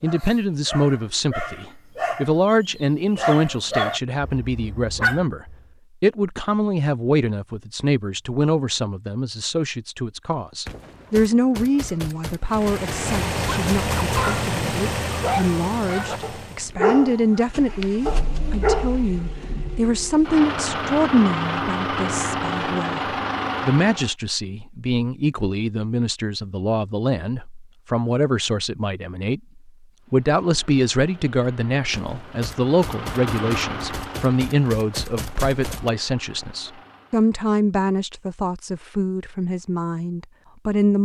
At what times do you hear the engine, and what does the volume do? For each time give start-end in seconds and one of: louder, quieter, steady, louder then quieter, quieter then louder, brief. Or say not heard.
12.4-24.1 quieter then louder
30.0-37.3 louder then quieter.